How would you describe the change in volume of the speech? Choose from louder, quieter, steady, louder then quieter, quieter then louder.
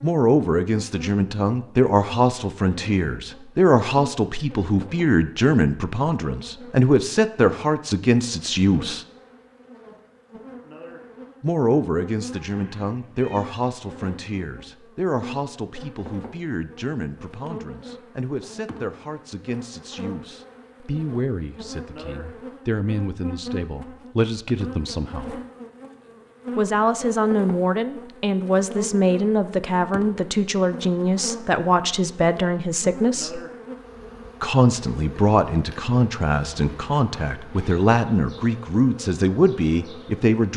quieter then louder.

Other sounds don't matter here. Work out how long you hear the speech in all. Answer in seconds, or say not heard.
36 s.